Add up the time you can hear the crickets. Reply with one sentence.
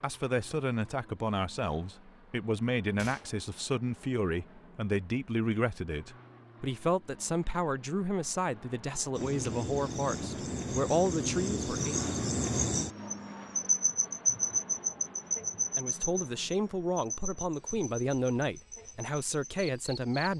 The crickets can be heard for 11 seconds in total.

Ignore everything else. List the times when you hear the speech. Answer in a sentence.
You can hear the speech from 0.0 to 12.0 s and from 15.8 to 20.3 s.